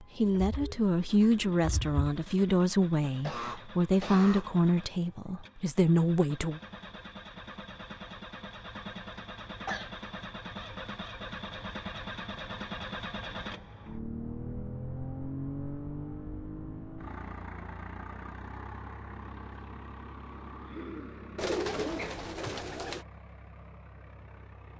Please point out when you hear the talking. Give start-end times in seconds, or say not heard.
0.0-6.6.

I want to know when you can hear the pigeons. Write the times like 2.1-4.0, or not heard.
0.2-2.0, 21.4-23.1.